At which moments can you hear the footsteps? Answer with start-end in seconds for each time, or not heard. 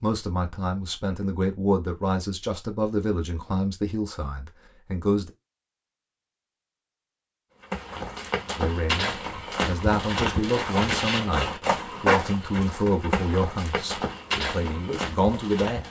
7.6-15.8.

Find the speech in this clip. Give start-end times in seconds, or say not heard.
0.0-5.3, 8.6-15.8.